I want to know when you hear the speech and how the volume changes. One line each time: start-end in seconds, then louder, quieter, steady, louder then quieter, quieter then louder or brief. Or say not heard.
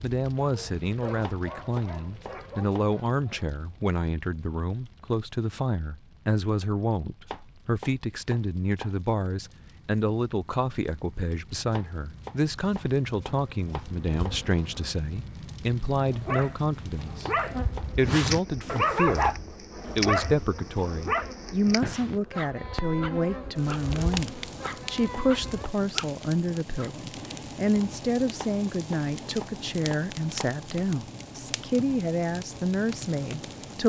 0.0-19.4 steady
19.9-33.8 steady.